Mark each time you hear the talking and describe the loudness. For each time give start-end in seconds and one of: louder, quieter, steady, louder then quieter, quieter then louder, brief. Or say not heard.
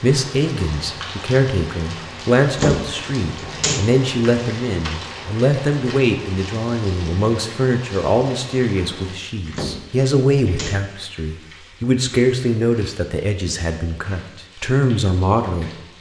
0.0-15.7 steady.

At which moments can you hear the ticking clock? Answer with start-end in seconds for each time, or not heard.
not heard.